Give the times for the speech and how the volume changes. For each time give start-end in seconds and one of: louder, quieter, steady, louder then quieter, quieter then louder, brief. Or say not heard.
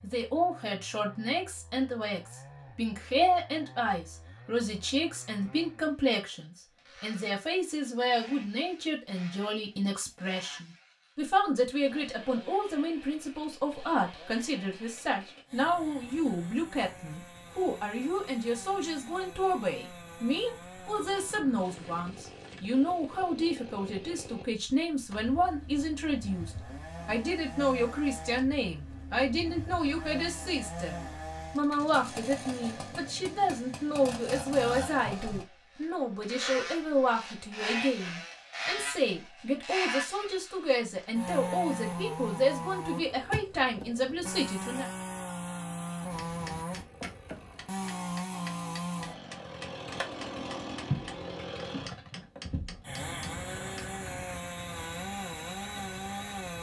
0.0-44.9 steady.